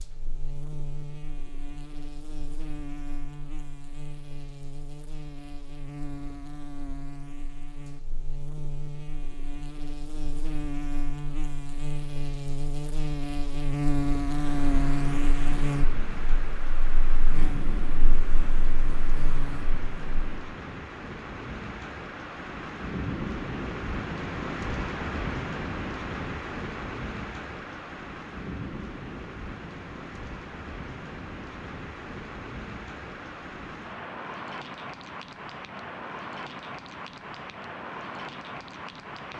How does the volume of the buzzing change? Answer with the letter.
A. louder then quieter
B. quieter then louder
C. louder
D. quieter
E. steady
A.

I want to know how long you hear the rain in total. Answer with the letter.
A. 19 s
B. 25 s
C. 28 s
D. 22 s
B.